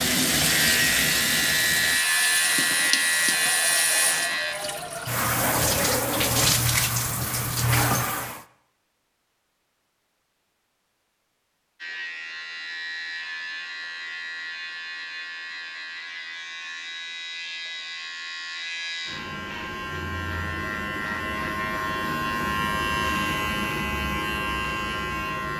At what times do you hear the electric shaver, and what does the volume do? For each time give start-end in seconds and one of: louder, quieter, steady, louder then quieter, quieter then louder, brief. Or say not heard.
0.1-4.5 steady
11.8-25.5 louder.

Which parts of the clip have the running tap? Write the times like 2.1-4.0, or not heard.
0.0-8.4.